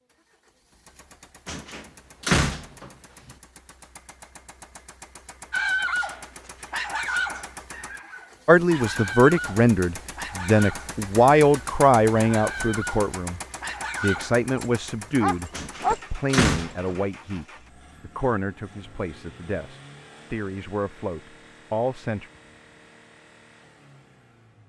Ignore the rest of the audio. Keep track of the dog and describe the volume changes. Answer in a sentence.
The loudness of the dog goes down, then up.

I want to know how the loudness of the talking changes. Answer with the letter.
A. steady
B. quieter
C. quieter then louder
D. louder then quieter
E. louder
B.